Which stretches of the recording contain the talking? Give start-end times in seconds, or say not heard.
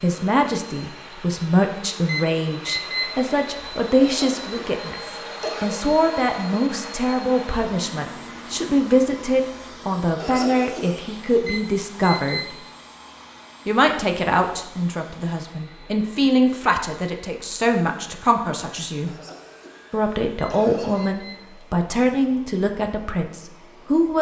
0.0-12.6, 13.7-19.1, 19.9-24.1.